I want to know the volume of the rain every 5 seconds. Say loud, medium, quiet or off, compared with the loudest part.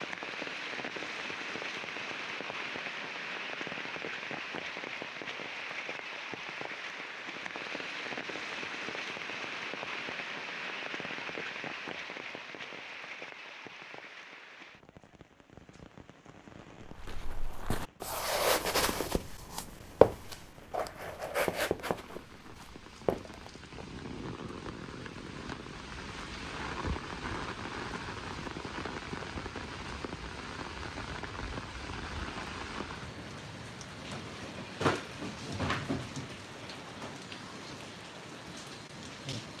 loud, loud, loud, quiet, medium, loud, loud, loud.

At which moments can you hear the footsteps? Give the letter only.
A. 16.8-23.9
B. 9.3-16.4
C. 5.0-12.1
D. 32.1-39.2
A.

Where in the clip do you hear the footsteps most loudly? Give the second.
20 s.